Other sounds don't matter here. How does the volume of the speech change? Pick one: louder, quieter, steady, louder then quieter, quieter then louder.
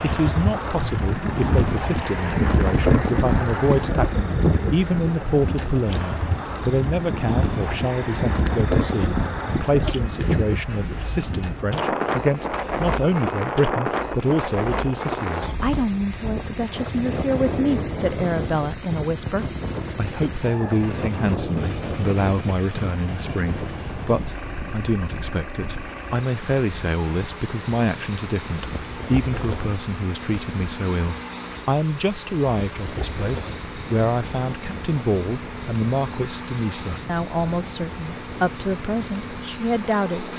steady.